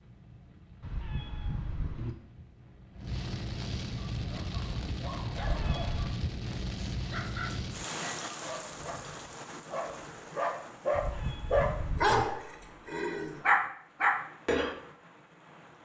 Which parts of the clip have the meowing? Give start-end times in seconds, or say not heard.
0.8-2.1, 5.3-6.2, 10.9-12.2.